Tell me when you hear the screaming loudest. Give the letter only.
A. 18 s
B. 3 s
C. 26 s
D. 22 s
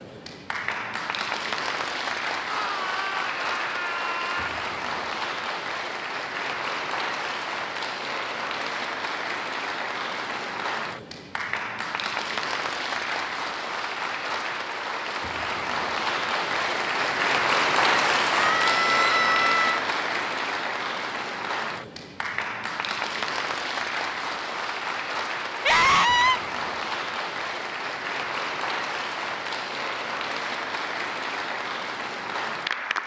C.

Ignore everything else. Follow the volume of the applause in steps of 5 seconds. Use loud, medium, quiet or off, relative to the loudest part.
medium, medium, medium, loud, medium, medium, medium.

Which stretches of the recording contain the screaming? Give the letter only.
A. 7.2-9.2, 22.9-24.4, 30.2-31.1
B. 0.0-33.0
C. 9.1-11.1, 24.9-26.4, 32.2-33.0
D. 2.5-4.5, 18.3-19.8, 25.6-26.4
D.